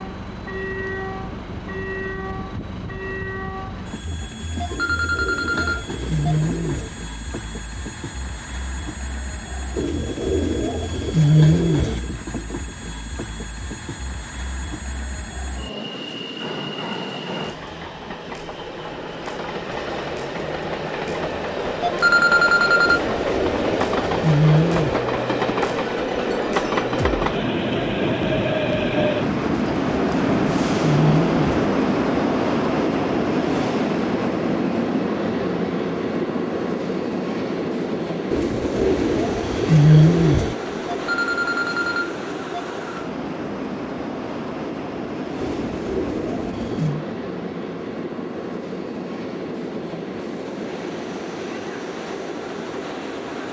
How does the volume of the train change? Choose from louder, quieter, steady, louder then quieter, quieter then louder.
louder then quieter.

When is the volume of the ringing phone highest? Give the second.
22 s.